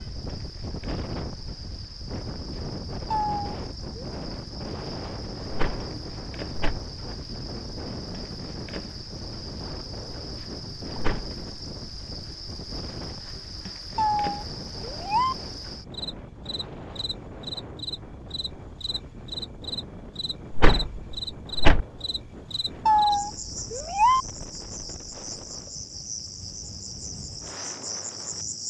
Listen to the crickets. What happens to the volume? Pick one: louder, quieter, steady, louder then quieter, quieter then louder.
louder.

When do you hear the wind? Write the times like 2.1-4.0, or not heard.
0.0-28.4.